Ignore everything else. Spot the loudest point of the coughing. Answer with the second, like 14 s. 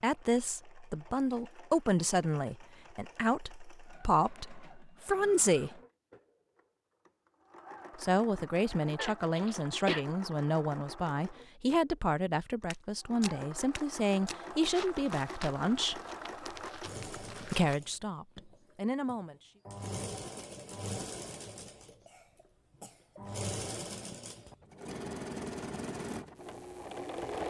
10 s.